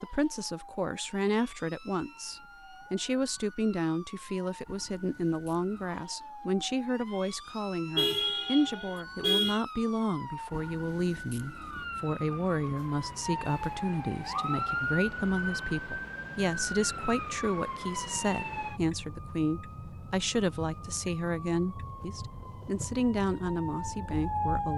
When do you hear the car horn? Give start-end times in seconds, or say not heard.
8.0-9.7.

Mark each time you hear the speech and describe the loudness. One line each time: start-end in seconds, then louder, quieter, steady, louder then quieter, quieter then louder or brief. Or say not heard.
0.0-24.7 steady.